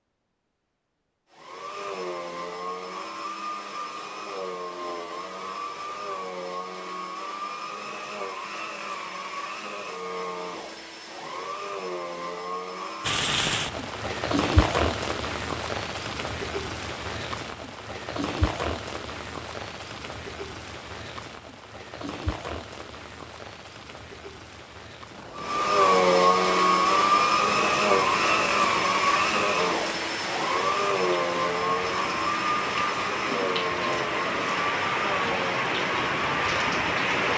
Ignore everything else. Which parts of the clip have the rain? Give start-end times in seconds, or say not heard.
13.0-37.3.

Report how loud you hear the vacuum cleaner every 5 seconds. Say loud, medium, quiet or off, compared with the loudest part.
quiet, quiet, quiet, off, off, loud, medium, medium.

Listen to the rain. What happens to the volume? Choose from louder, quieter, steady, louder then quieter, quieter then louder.
quieter then louder.